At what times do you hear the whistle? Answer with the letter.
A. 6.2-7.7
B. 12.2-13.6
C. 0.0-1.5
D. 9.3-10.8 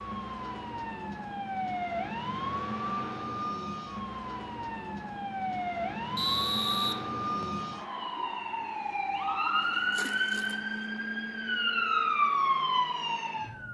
A.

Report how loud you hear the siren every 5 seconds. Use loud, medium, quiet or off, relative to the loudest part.
medium, loud, loud.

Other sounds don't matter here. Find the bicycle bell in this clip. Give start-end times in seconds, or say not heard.
not heard.